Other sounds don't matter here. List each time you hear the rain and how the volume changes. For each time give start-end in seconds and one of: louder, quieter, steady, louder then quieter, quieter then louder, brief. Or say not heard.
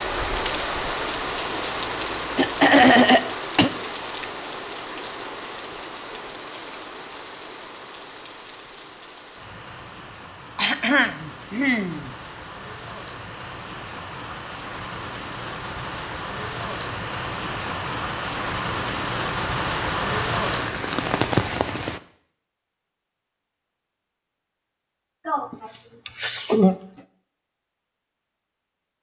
0.0-22.0 quieter then louder.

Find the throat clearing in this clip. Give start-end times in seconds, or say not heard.
2.4-3.7, 10.6-12.1, 25.2-26.8.